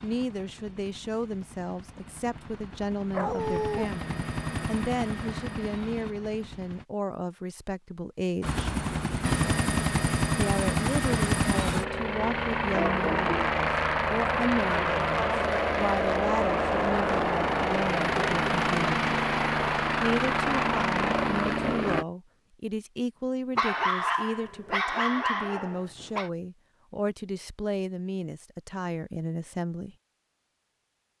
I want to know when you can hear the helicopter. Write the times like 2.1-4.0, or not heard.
0.0-6.8, 8.4-22.1.